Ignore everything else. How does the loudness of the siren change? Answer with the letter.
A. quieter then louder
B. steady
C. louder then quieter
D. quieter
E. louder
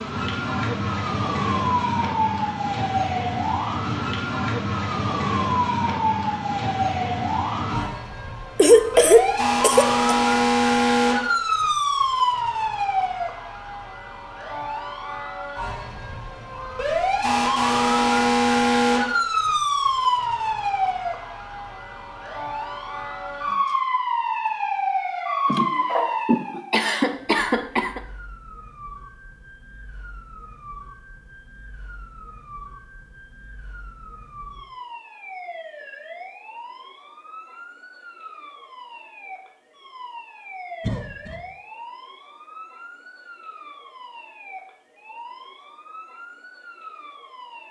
D.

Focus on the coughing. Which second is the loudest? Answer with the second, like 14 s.
9 s.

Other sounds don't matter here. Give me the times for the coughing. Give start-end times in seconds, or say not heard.
8.6-9.9, 25.4-28.0, 40.8-41.4.